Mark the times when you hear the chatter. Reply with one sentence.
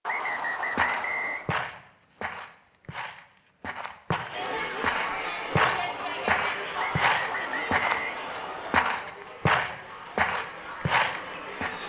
The chatter can be heard from 4.3 to 11.8 s.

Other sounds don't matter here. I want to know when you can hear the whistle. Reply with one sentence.
The whistle can be heard from 0.1 to 1.5 s and from 6.8 to 8.8 s.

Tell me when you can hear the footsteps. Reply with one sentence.
The footsteps can be heard from 0.2 to 11.8 s.